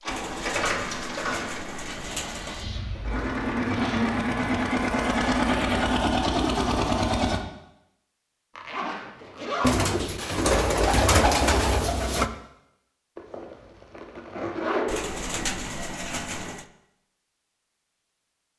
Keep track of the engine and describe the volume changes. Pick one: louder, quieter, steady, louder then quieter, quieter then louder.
quieter then louder.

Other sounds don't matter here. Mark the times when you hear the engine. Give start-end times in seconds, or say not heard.
0.0-7.4.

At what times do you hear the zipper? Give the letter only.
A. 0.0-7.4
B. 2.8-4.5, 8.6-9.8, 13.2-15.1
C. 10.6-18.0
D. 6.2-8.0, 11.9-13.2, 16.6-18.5
B.